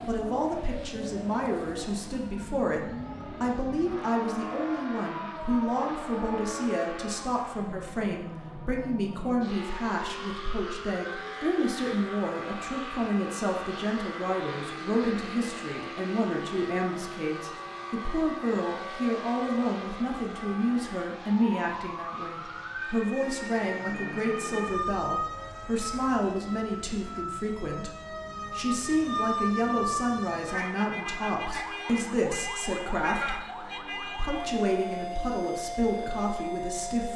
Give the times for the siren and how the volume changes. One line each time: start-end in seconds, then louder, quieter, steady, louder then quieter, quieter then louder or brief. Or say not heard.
0.0-37.1 louder.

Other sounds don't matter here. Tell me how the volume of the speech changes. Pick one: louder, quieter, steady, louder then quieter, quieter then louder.
steady.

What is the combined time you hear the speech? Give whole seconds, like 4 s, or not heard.
37 s.